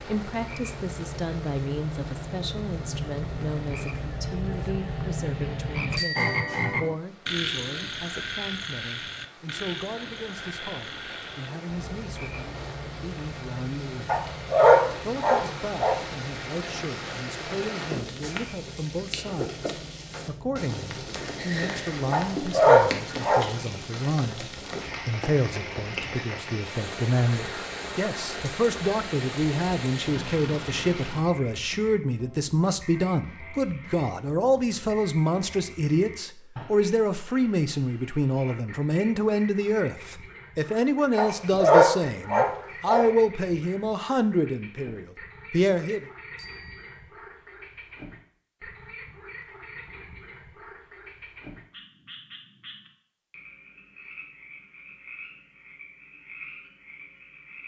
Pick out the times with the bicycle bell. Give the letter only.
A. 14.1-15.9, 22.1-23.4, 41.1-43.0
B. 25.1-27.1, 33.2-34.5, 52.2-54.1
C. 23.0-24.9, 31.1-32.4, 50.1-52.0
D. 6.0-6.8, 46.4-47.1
D.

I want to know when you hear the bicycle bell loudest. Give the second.
6 s.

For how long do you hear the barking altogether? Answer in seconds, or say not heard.
5 s.